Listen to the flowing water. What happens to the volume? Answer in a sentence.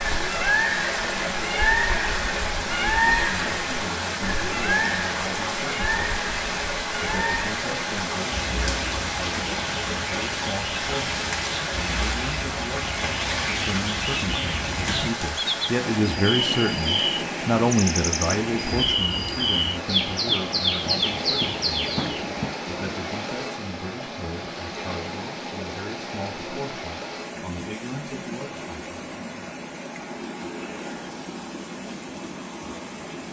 The loudness of the flowing water goes down.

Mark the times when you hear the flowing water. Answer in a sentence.
The flowing water can be heard from 0.0 to 33.2 s.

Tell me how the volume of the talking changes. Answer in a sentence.
The volume of the talking goes up, then down.